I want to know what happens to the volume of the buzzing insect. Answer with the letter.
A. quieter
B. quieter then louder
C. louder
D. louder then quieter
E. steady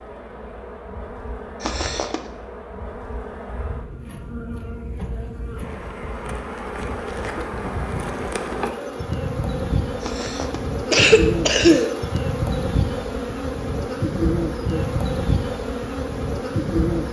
C.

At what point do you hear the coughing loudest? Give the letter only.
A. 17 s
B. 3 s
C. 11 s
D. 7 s
C.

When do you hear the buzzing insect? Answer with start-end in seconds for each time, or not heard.
0.0-17.0.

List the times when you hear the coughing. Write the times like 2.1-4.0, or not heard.
1.6-2.2, 10.0-11.9.